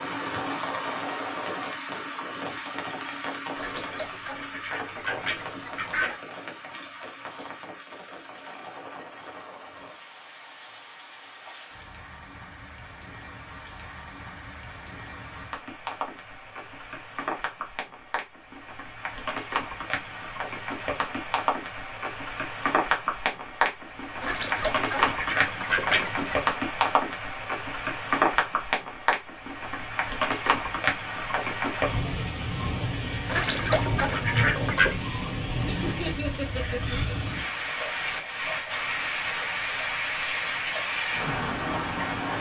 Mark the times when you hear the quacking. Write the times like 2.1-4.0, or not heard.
3.5-6.2, 24.2-26.4, 33.2-35.0.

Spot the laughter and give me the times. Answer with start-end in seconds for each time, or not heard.
35.6-37.4.